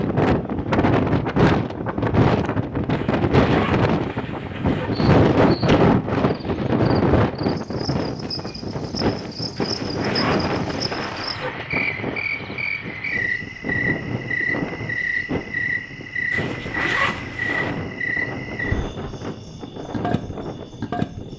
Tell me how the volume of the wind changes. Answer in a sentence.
The volume of the wind goes down.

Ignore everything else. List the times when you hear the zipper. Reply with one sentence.
You can hear the zipper from 2.9 to 4.9 s, from 9.6 to 11.5 s and from 16.3 to 17.8 s.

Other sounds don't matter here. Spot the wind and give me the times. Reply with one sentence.
You can hear the wind from 0.0 to 21.3 s.